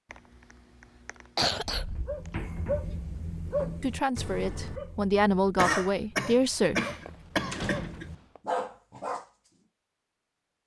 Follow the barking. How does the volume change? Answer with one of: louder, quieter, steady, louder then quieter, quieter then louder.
quieter then louder.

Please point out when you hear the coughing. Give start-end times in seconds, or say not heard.
0.1-1.9, 5.5-8.1.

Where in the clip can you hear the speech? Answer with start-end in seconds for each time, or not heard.
3.8-6.8.